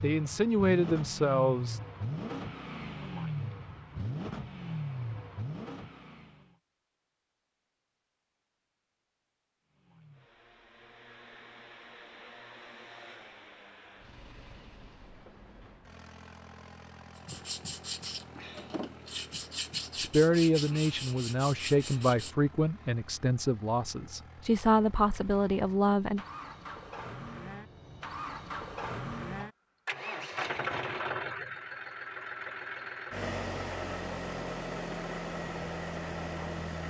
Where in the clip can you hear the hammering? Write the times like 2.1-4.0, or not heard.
not heard.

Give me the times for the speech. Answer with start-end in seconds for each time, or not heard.
0.0-1.8, 19.9-26.2.